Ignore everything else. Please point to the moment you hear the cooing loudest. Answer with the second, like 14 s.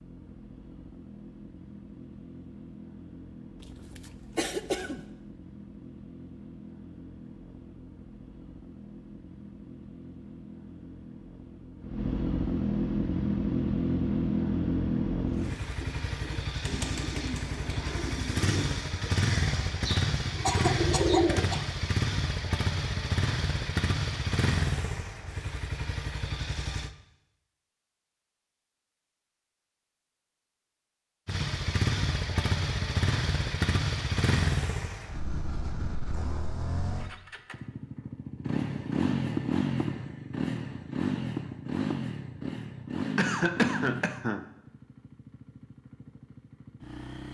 21 s.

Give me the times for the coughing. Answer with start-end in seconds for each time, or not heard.
3.6-5.0, 20.4-21.8, 43.1-44.5.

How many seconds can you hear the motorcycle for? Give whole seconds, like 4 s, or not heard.
43 s.